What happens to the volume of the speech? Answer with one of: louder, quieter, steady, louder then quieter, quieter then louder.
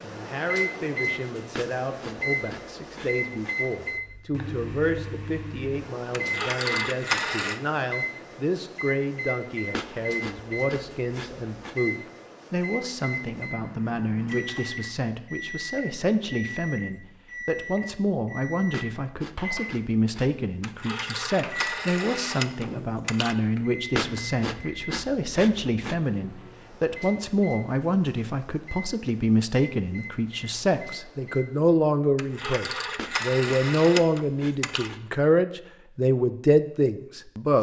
louder.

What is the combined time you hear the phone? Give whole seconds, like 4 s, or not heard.
7 s.